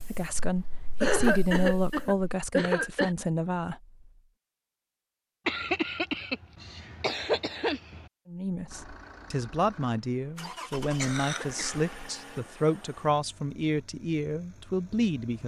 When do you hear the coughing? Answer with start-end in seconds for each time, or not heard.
1.0-3.1, 5.5-8.1, 10.8-11.9.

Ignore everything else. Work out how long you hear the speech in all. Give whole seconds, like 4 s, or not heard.
11 s.